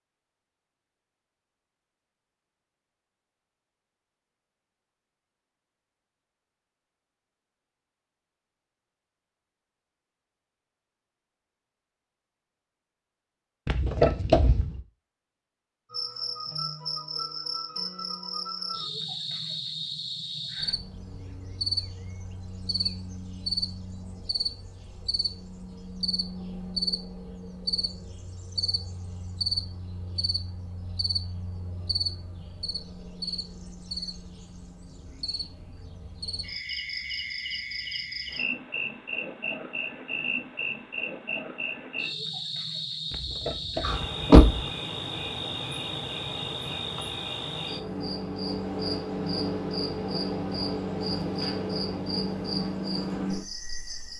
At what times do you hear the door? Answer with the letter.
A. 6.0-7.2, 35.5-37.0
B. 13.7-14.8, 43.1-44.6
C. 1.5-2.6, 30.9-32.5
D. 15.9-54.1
B.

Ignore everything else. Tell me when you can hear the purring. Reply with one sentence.
You can't hear the purring here.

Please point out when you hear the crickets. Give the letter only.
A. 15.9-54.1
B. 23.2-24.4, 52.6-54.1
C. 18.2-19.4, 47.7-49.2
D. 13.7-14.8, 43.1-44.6
A.